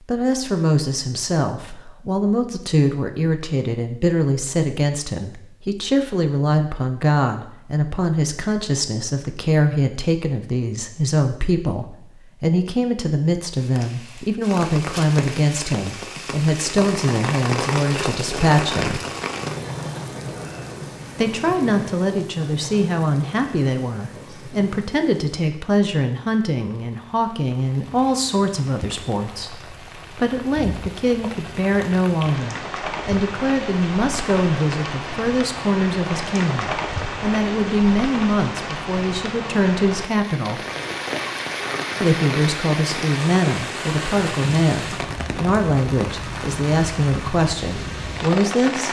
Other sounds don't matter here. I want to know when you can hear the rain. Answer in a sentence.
You can hear the rain from 13.6 to 48.8 s.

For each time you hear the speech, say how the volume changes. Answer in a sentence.
The speech can be heard from 0.1 to 19.1 s, at a steady volume; from 21.1 to 40.6 s, at a steady volume; and from 42.0 to 48.8 s, at a steady volume.